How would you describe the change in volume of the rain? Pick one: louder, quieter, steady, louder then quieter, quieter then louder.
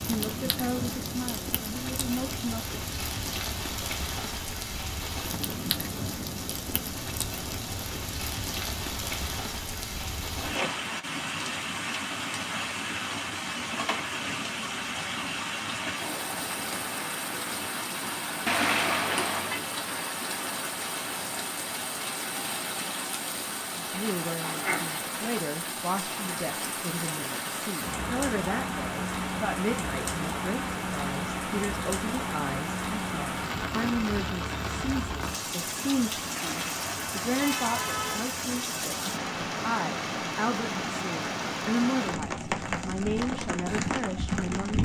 steady.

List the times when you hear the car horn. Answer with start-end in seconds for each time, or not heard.
18.4-19.6, 36.4-38.4.